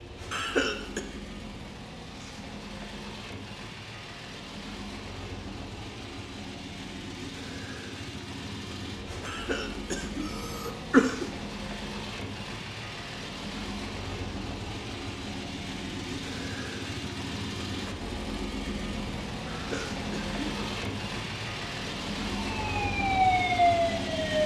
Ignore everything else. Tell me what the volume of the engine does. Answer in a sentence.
The volume of the engine goes up.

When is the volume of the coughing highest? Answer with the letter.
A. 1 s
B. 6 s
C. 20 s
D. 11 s
D.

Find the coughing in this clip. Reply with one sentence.
The coughing can be heard from 0.3 to 1.0 s, from 9.2 to 11.2 s and from 19.4 to 20.6 s.